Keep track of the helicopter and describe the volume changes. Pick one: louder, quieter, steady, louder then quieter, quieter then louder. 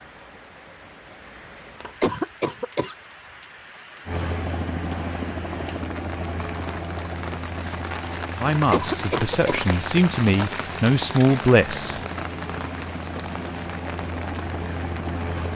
quieter then louder.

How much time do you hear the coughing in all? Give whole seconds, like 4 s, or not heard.
2 s.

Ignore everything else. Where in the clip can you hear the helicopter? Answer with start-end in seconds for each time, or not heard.
4.0-15.5.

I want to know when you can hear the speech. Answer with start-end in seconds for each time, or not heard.
8.3-12.0.